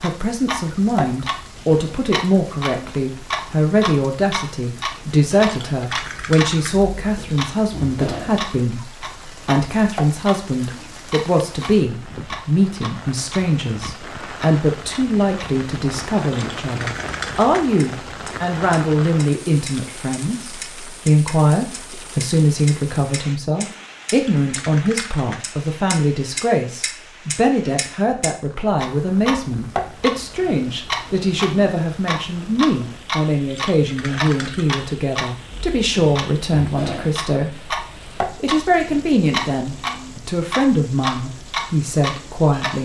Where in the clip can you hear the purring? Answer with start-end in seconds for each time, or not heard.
not heard.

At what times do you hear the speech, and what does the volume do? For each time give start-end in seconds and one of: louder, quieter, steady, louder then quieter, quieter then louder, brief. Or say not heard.
0.0-42.8 steady.